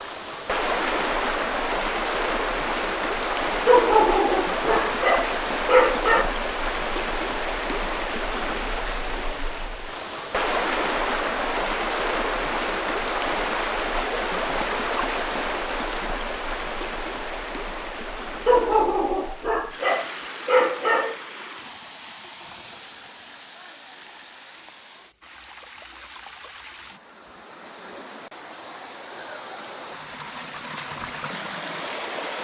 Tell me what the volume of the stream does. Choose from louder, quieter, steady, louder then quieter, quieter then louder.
quieter.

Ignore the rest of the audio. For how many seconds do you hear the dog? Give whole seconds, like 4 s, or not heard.
5 s.